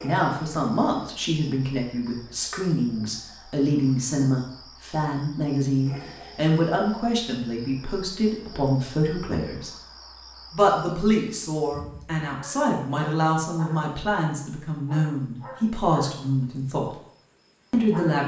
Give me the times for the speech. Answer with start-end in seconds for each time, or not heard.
0.0-9.7, 10.5-16.9, 17.7-18.2.